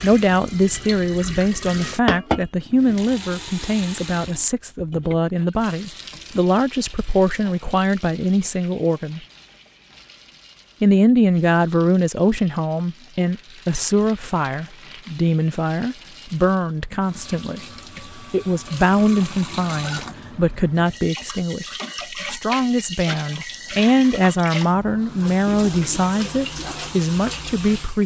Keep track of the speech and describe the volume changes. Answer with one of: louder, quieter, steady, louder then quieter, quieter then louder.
steady.